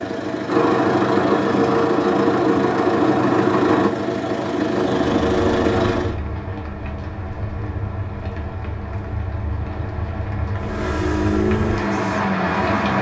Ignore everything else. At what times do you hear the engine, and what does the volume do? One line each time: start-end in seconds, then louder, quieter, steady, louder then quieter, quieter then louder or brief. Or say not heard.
0.0-6.2 steady
10.6-12.9 brief.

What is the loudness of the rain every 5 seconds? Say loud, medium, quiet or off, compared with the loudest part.
off, medium, loud.